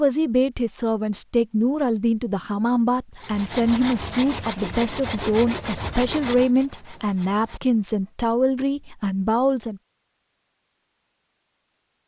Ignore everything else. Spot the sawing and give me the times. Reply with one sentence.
The sawing can be heard from 3.1 to 8.1 s.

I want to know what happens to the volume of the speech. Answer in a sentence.
The loudness of the speech stays about the same.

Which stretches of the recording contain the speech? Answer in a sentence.
The speech can be heard from 0.0 to 9.8 s.